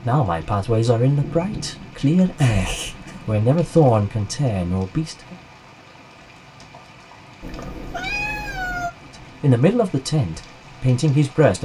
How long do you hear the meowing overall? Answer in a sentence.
The meowing can be heard for 3 seconds in total.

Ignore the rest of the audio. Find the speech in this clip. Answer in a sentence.
The speech can be heard from 0.1 to 5.3 s and from 9.4 to 11.6 s.